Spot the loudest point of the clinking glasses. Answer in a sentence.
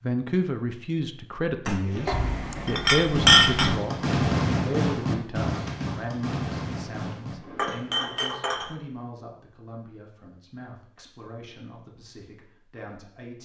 The loudest moment of the clinking glasses is at 3 seconds.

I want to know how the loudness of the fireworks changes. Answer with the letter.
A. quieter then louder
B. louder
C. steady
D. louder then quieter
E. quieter
D.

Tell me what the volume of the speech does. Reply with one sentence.
The volume of the speech goes down.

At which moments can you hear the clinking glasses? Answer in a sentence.
You can hear the clinking glasses from 2.0 to 3.8 s and from 7.5 to 8.8 s.